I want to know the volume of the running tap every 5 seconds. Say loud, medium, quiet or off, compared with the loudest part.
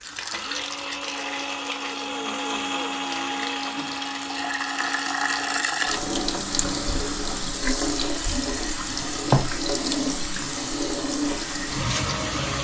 medium, loud, loud.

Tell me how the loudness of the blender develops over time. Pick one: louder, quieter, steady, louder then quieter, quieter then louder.
quieter.